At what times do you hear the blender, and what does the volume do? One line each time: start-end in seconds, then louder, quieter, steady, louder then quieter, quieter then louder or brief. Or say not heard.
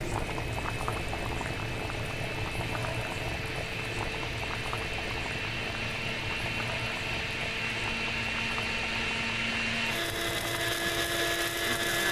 0.0-12.0 louder.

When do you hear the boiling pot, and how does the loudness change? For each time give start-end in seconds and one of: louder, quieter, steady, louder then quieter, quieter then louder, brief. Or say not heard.
0.0-12.0 quieter.